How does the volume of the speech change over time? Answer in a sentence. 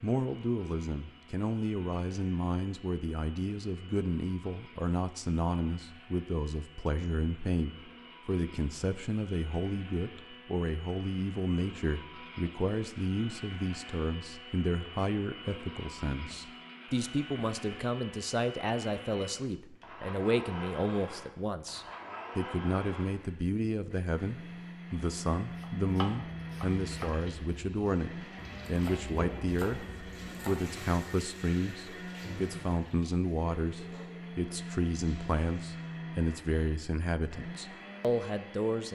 The loudness of the speech stays about the same.